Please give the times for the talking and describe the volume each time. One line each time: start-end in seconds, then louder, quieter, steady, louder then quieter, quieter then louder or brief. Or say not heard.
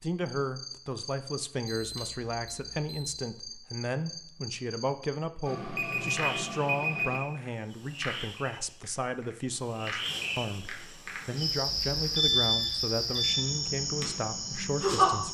0.0-15.2 steady.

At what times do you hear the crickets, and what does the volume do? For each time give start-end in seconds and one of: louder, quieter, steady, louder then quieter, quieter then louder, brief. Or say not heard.
0.0-15.2 louder.